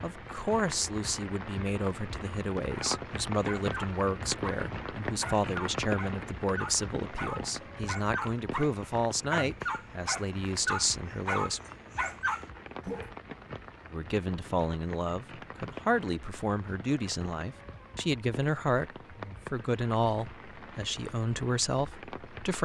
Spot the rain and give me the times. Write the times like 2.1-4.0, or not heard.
0.0-22.6.